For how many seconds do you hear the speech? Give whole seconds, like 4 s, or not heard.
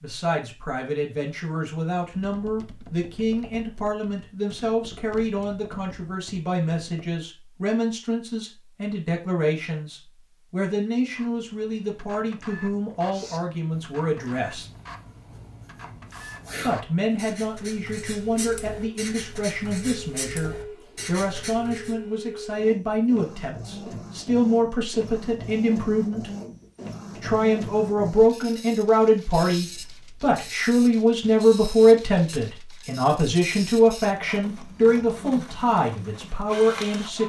34 s.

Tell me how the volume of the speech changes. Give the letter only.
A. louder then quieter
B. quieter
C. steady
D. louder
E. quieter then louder
D.